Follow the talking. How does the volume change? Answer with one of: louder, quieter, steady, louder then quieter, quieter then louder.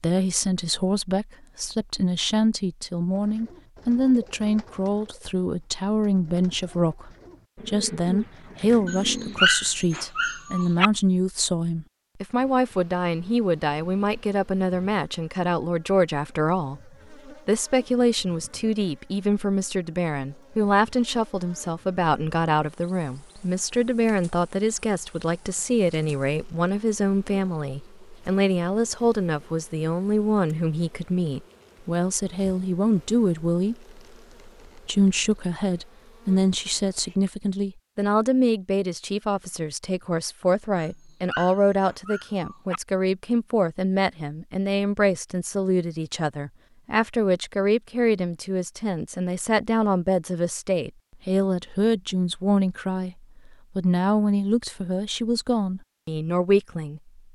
steady.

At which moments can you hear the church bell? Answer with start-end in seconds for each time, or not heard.
not heard.